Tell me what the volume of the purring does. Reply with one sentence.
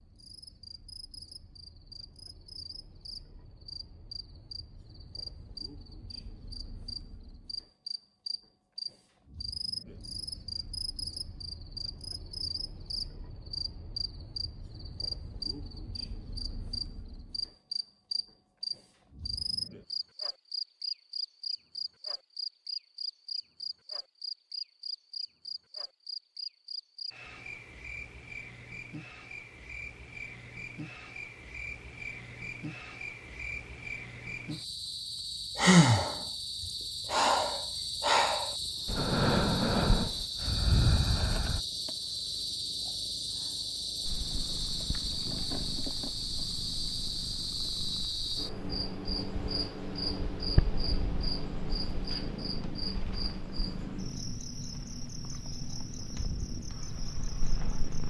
The volume of the purring goes up, then down.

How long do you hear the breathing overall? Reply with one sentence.
You can hear the breathing for 6 seconds altogether.